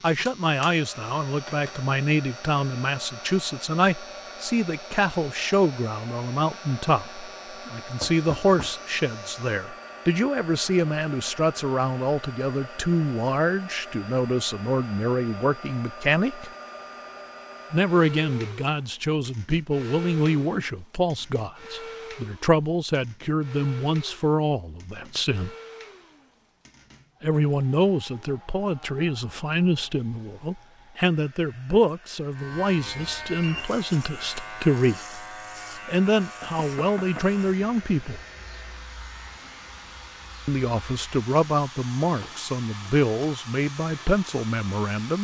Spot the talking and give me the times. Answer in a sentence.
You can hear the talking from 0.0 to 16.5 s, from 17.7 to 25.5 s, from 27.2 to 35.2 s, from 35.9 to 38.2 s and from 40.5 to 45.1 s.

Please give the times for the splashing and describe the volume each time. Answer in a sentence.
You can't hear the splashing here.